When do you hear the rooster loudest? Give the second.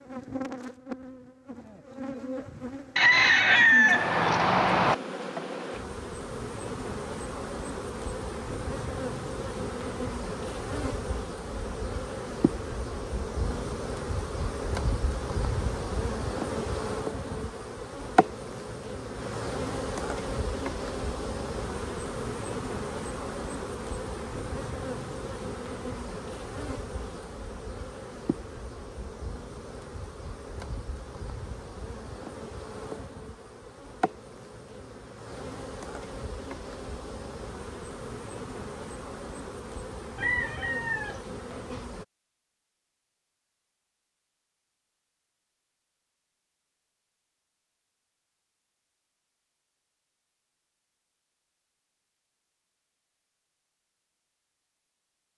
4 s.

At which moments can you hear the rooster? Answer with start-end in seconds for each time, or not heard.
3.0-5.0, 40.1-41.9.